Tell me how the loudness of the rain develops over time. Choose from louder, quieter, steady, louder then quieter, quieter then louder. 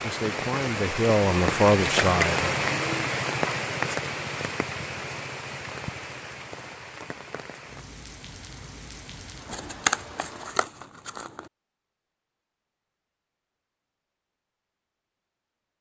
quieter.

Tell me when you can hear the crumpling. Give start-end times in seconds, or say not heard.
9.5-11.4.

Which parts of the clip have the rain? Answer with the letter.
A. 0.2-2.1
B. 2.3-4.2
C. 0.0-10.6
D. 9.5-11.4
C.